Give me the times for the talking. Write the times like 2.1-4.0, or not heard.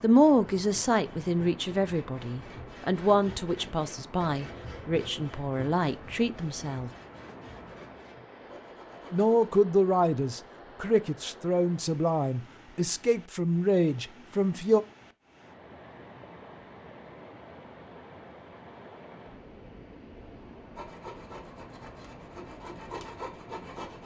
0.0-6.9, 9.1-14.8.